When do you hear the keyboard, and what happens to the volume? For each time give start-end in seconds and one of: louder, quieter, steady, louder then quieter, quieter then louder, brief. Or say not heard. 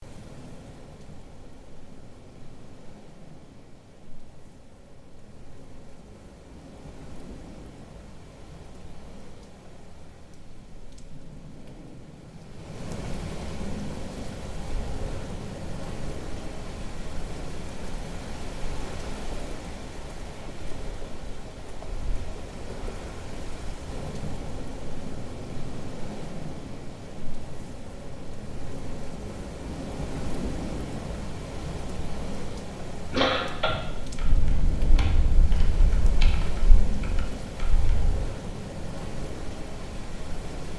33.1-38.2 quieter.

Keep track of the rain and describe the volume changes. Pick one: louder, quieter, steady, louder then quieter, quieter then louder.
louder.